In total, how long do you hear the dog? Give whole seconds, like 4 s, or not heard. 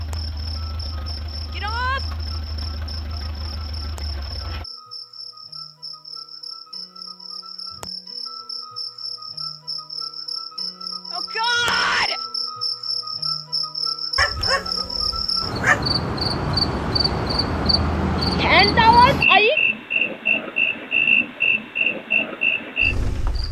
2 s.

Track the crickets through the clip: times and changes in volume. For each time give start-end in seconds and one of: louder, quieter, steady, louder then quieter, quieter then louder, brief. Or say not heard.
0.0-23.4 louder.